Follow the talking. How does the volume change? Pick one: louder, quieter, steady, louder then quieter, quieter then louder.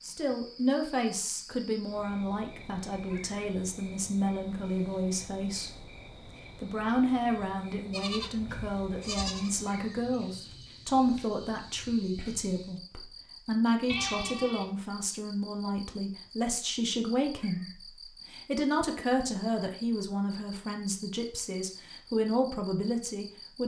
steady.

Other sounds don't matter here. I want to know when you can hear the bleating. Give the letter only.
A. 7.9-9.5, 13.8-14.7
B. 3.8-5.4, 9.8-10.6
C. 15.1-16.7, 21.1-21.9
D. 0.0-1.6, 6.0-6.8
A.